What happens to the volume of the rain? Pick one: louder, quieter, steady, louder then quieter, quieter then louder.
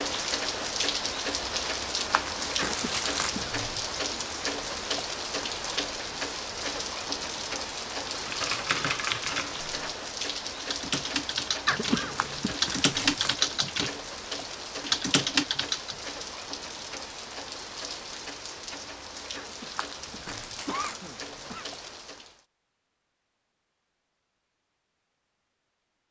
quieter.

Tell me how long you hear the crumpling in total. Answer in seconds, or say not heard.
4 s.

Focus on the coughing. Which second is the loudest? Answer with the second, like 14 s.
12 s.